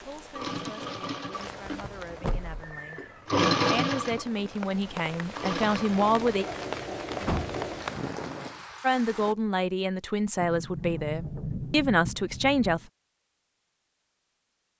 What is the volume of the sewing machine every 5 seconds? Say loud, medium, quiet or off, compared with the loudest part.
loud, medium, off.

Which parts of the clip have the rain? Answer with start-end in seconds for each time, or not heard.
0.0-9.3.